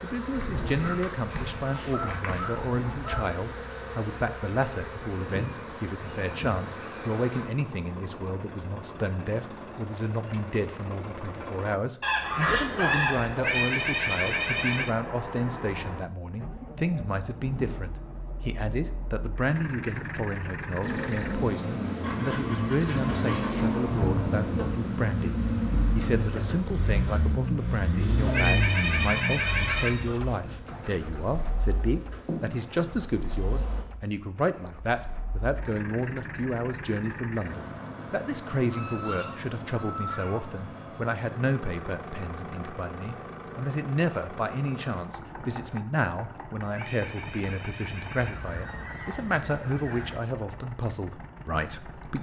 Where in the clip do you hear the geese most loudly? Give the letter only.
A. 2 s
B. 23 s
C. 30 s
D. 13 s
D.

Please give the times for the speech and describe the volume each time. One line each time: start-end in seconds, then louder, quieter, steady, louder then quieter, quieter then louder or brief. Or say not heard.
0.0-52.1 steady.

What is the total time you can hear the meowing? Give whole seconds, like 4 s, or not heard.
5 s.